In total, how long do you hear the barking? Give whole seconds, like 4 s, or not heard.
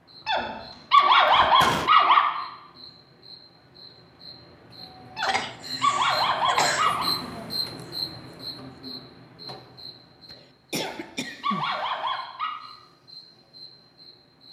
6 s.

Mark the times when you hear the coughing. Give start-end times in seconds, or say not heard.
0.9-1.9, 5.2-6.9, 10.3-11.8.